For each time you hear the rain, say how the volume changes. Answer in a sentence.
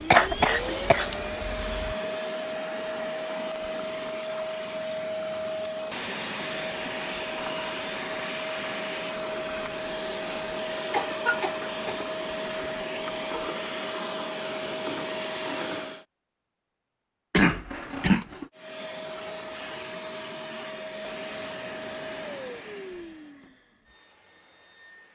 The rain can't be heard in this clip.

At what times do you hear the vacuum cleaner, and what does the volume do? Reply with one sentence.
You can hear the vacuum cleaner from 0.0 to 16.1 s, at a steady volume; and from 18.5 to 25.0 s, getting quieter.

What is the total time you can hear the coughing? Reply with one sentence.
You can hear the coughing for 4 seconds altogether.